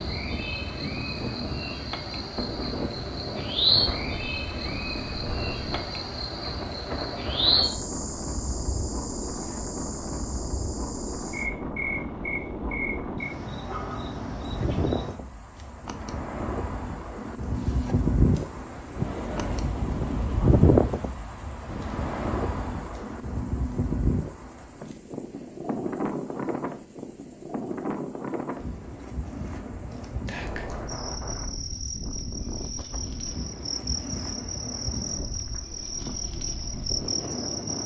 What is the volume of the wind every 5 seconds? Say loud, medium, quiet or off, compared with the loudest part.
medium, medium, medium, loud, loud, medium, medium, medium.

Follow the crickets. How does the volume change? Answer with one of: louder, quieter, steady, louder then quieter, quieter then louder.
quieter then louder.